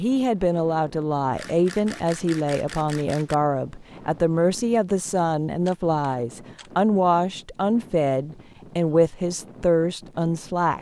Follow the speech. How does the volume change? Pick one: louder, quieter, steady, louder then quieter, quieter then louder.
steady.